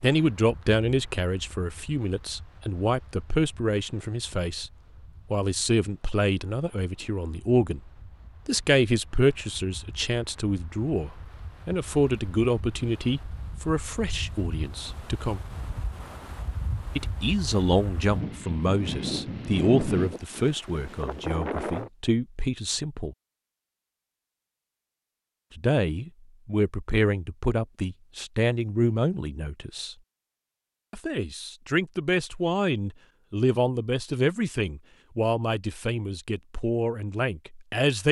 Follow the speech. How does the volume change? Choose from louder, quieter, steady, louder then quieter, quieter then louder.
steady.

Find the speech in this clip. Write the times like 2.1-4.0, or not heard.
0.0-4.7, 5.3-15.4, 16.9-23.1, 25.6-29.9, 30.9-38.0.